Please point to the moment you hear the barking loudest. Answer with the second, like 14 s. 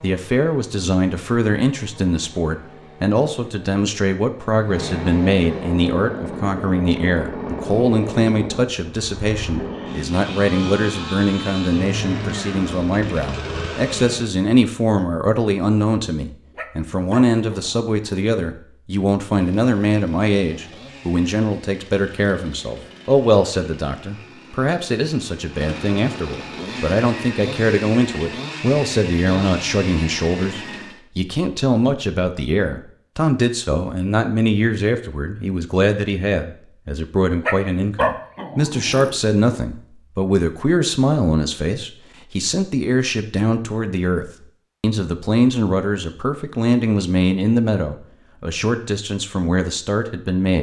38 s.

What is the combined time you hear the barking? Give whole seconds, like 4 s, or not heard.
4 s.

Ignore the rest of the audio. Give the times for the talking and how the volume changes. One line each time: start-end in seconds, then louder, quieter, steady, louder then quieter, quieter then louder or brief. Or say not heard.
0.0-50.5 steady.